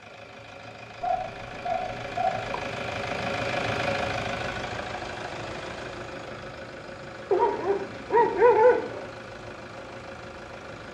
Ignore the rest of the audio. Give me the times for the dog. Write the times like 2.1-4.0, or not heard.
1.0-2.6, 7.3-9.1.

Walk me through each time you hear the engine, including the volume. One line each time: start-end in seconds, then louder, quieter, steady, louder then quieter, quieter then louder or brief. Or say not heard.
0.0-10.8 louder then quieter.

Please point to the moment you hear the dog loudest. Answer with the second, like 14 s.
9 s.